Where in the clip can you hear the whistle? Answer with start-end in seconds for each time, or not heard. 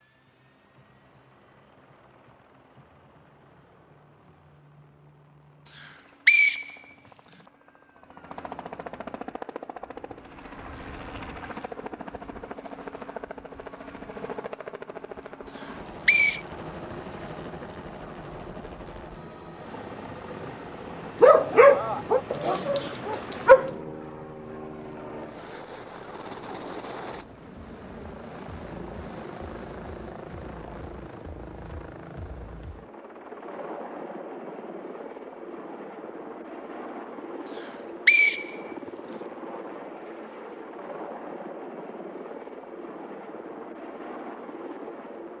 5.8-7.3, 15.6-16.4, 37.6-39.1.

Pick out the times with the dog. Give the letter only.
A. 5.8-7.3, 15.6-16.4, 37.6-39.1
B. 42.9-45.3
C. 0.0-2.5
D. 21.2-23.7
D.